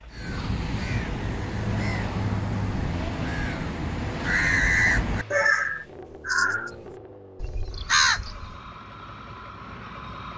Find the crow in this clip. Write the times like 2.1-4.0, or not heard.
0.1-8.6.